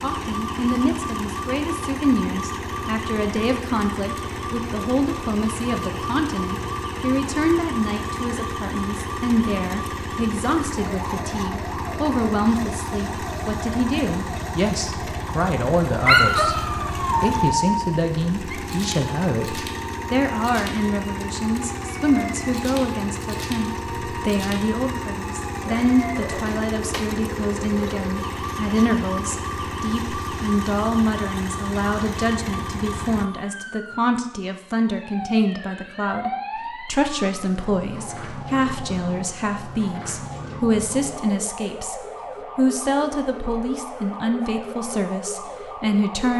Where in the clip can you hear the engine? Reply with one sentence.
The engine can be heard from 0.0 to 33.2 s.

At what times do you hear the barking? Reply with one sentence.
The barking can be heard from 16.1 to 18.6 s and from 25.6 to 27.1 s.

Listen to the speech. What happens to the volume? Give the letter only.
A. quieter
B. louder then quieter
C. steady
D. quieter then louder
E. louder
C.